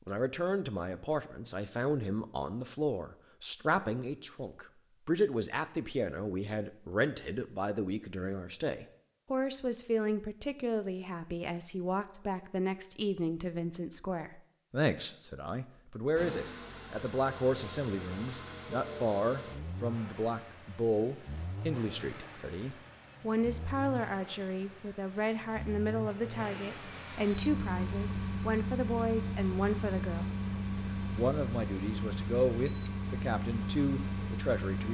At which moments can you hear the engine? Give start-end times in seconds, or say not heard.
16.1-34.8.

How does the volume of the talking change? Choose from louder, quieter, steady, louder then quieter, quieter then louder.
steady.